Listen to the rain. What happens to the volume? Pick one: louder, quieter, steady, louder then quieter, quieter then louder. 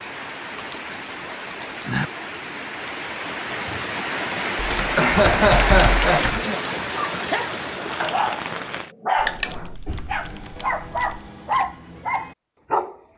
louder then quieter.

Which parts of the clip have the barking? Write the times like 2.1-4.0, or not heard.
7.0-12.9.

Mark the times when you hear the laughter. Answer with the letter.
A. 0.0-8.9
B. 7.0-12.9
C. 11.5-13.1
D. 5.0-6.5
D.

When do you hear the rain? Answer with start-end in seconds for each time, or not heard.
0.0-8.9.